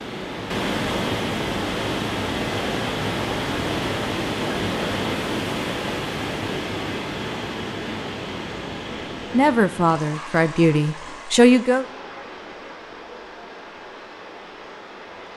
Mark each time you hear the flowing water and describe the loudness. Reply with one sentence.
The flowing water can be heard from 0.0 to 15.3 s, getting quieter.